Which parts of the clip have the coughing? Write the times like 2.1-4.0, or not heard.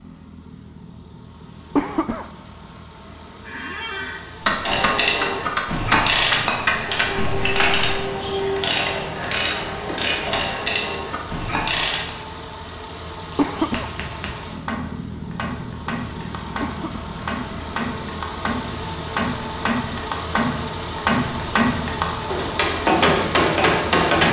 1.8-2.3, 13.3-13.9, 16.6-17.1.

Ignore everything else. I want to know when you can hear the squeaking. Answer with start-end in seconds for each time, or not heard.
3.5-4.2, 13.3-13.8.